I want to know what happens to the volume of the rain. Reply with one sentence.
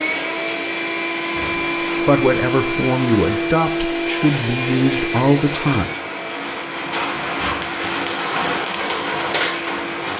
The loudness of the rain goes up.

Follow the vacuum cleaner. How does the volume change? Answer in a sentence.
The volume of the vacuum cleaner goes down.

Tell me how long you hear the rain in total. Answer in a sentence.
You can hear the rain for 10 seconds altogether.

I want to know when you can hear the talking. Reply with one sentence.
The talking can be heard from 2.0 to 5.8 s.